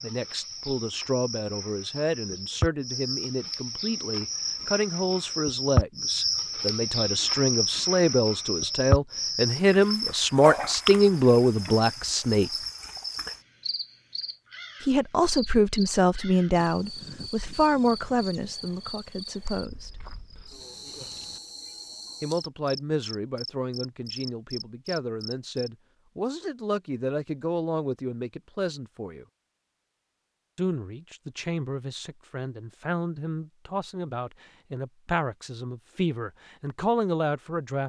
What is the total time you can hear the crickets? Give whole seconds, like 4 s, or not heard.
26 s.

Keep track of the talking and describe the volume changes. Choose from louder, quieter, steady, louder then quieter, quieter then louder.
louder then quieter.